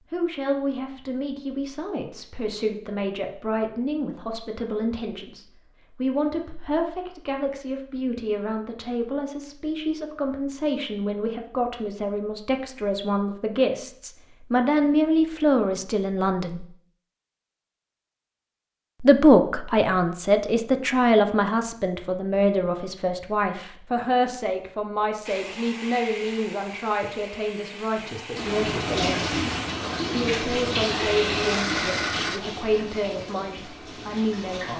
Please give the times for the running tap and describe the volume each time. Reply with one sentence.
You can hear the running tap from 28.4 to 34.7 s, getting quieter.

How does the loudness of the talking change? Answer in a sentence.
The loudness of the talking goes up, then down.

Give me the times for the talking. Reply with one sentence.
You can hear the talking from 0.1 to 16.6 s, from 19.0 to 29.4 s and from 30.1 to 34.7 s.